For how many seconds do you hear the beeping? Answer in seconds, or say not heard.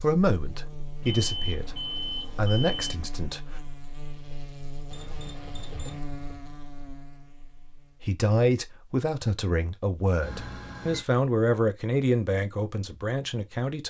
4 s.